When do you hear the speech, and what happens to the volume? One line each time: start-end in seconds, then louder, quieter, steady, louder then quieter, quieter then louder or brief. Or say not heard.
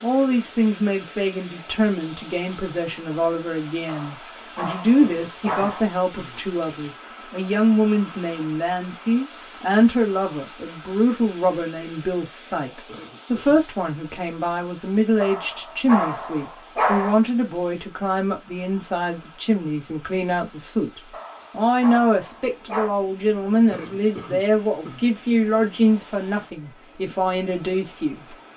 0.0-28.5 steady.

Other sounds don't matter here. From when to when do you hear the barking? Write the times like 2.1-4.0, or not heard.
3.9-5.8, 15.2-17.1, 21.1-22.9.